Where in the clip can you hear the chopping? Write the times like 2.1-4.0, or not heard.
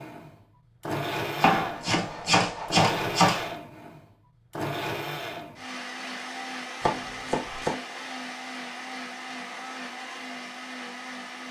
1.4-3.5, 6.8-7.8.